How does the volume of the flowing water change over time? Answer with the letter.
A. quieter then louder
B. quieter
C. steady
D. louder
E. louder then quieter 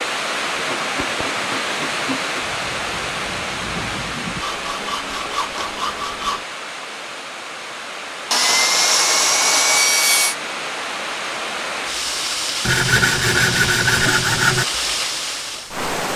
A.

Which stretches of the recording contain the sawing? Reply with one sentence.
The sawing can be heard from 0.6 to 2.5 s, from 4.4 to 6.5 s, from 8.3 to 10.3 s and from 12.7 to 14.7 s.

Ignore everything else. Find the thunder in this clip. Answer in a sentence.
You can hear the thunder from 2.4 to 4.5 s.